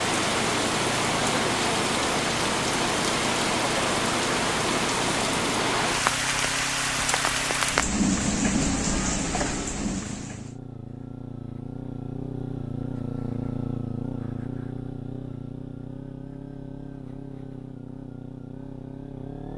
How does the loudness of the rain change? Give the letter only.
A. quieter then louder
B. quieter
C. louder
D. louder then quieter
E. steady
E.